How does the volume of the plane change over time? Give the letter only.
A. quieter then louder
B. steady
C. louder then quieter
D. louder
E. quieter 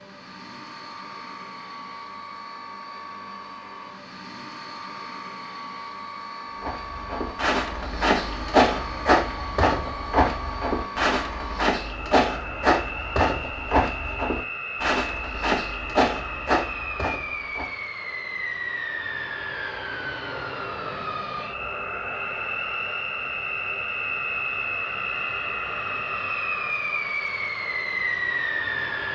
D.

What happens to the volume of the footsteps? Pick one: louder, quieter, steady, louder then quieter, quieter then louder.
steady.